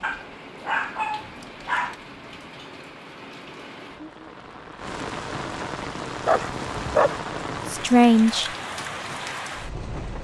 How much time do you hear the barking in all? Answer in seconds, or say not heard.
3 s.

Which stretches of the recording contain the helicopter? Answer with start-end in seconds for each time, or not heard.
not heard.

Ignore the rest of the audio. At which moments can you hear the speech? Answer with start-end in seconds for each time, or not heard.
7.7-8.5.